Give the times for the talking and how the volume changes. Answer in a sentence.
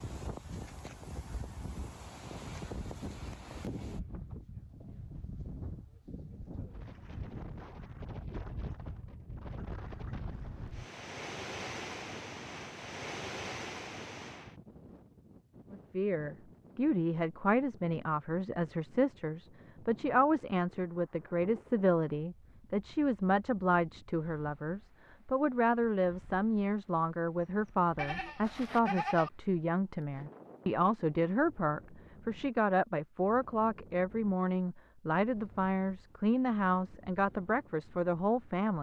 You can hear the talking from 15.7 to 38.7 s, at a steady volume.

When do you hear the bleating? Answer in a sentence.
The bleating can be heard from 27.5 to 29.3 s.